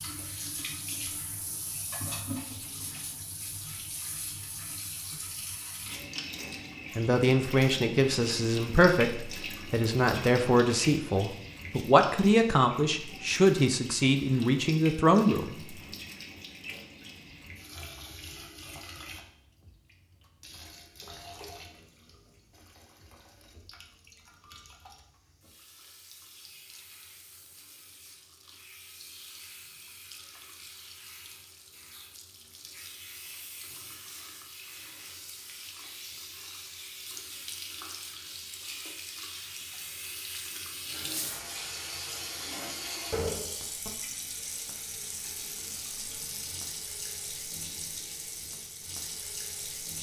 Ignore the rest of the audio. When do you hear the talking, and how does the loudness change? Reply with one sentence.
You can hear the talking from 7.0 to 15.6 s, at a steady volume.